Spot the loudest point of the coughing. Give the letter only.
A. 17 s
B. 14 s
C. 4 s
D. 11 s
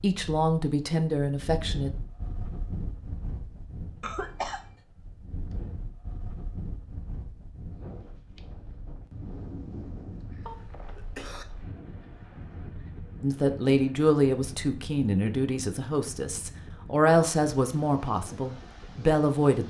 C.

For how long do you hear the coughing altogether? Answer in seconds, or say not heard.
2 s.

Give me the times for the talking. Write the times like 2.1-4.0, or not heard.
0.0-1.9, 13.2-19.6.